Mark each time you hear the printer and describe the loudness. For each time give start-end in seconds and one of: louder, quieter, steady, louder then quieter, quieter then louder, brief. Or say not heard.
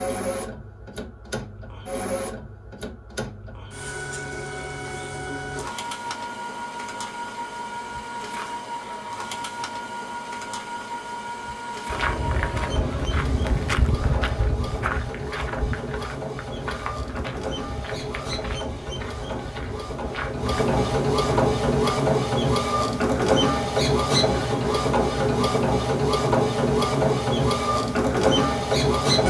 0.0-29.2 louder.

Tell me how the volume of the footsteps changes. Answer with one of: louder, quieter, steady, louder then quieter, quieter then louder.
quieter.